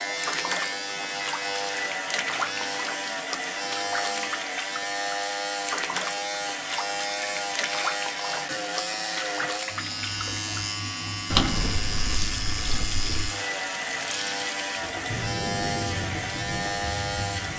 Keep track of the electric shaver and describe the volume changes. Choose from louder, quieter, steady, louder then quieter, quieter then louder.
steady.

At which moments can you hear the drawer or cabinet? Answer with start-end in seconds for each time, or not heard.
11.3-13.3.